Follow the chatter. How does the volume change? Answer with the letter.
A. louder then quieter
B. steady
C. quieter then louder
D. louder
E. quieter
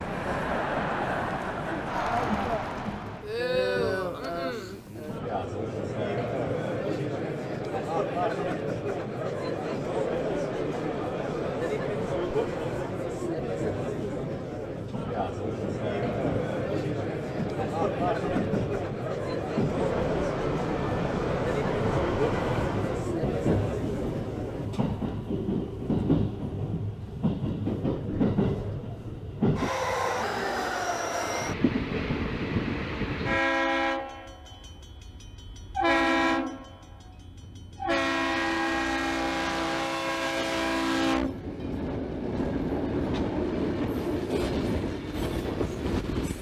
B.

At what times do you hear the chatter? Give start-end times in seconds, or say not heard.
0.0-24.7.